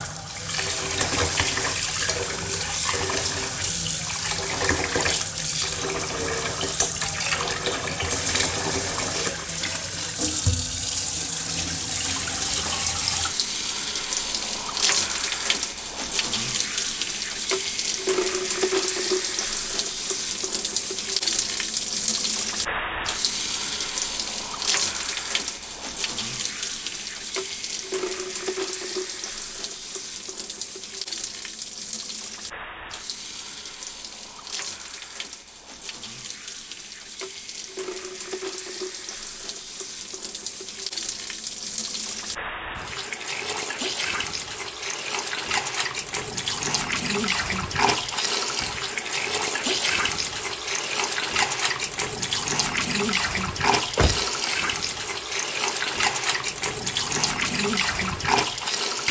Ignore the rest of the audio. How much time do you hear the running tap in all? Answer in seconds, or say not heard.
59 s.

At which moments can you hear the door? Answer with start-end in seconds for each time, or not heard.
53.6-54.7.